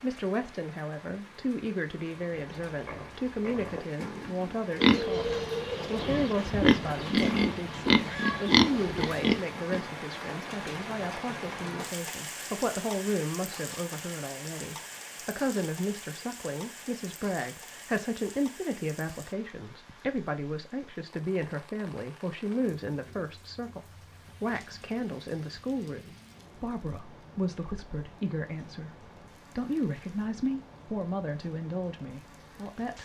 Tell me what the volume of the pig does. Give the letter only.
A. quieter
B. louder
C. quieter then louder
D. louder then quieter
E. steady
B.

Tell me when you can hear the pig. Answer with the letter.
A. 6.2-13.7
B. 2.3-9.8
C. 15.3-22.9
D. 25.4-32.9
B.